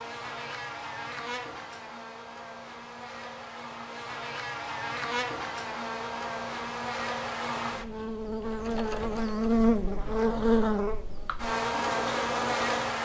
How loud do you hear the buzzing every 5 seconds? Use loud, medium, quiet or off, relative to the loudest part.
medium, loud, loud.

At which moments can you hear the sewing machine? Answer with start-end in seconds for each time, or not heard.
8.4-12.9.